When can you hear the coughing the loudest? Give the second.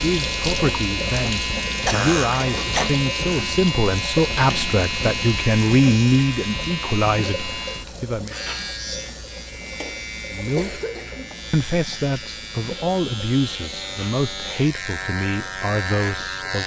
2 s.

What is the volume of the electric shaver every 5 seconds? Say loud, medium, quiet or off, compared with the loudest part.
loud, loud, medium, loud.